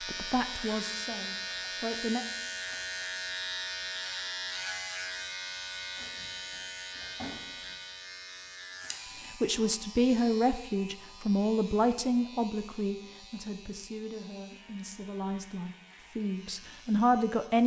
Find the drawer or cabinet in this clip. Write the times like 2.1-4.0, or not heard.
6.0-7.8.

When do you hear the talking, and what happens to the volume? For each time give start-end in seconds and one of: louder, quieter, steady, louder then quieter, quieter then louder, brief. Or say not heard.
0.0-2.2 brief
9.2-17.6 quieter then louder.